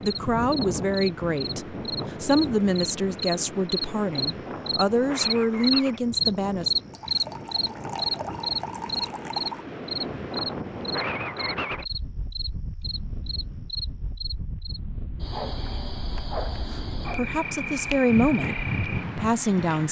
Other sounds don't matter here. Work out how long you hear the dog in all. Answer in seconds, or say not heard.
not heard.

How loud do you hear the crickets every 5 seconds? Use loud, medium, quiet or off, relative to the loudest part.
medium, loud, medium, medium.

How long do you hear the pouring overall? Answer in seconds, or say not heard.
3 s.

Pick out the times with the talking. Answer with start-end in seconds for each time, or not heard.
0.0-6.7, 16.7-19.8.